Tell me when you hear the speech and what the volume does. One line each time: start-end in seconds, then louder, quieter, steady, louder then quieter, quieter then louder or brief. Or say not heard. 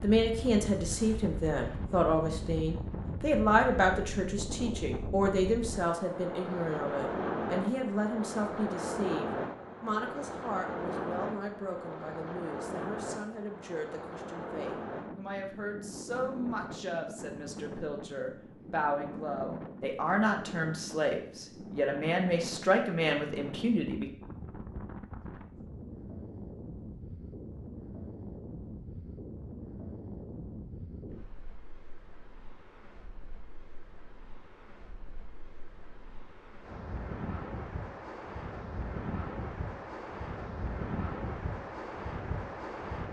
0.0-24.1 quieter then louder.